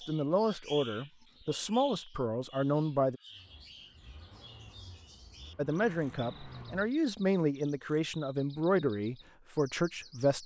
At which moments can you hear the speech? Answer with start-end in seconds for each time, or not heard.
0.0-3.2, 5.5-10.4.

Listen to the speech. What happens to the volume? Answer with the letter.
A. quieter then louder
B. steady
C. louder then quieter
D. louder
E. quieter
B.